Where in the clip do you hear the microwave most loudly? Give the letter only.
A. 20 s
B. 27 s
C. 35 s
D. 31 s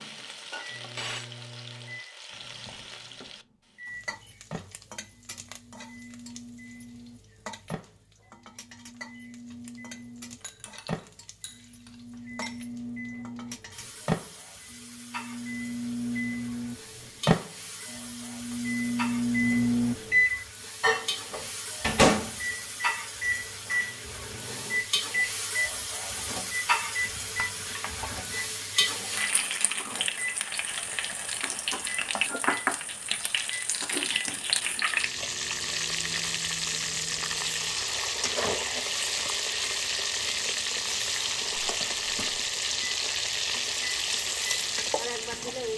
A.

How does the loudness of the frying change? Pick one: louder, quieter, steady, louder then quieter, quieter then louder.
louder.